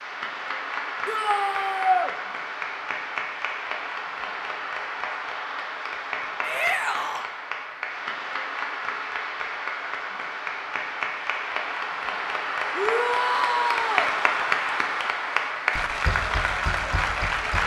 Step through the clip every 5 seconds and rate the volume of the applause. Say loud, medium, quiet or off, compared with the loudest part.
medium, medium, loud, loud.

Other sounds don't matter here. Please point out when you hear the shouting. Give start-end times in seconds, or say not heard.
1.1-2.1, 6.4-7.3, 12.8-14.2.